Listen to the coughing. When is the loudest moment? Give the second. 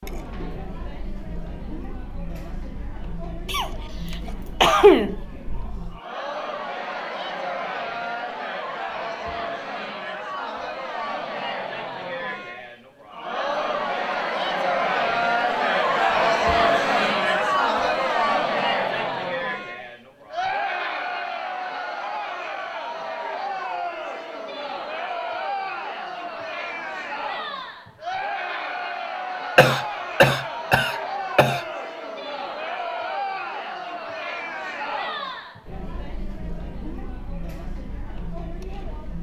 5 s.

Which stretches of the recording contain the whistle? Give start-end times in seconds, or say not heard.
not heard.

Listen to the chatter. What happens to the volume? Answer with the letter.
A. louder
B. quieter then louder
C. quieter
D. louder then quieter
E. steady
D.